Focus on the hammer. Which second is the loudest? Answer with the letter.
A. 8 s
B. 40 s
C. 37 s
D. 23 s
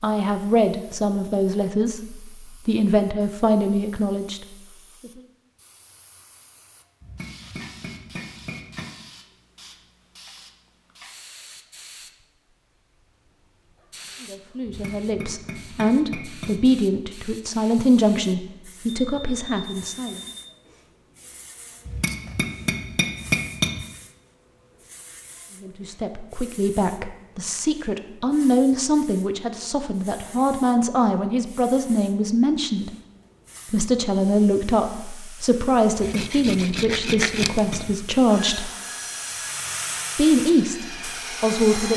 D.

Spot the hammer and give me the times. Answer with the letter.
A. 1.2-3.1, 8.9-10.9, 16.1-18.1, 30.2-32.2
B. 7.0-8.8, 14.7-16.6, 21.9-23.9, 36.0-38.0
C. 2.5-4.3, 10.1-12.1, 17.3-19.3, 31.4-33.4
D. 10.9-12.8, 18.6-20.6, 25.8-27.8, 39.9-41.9
B.